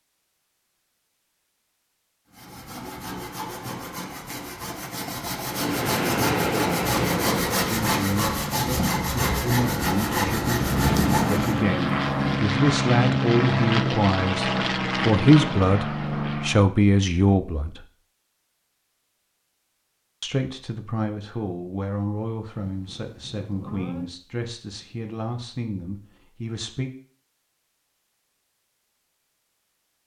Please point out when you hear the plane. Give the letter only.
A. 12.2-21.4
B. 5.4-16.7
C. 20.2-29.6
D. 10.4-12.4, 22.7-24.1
B.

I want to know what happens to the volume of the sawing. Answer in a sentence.
The loudness of the sawing goes up.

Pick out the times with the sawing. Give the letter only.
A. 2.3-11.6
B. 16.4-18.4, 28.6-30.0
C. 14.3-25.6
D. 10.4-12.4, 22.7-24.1
A.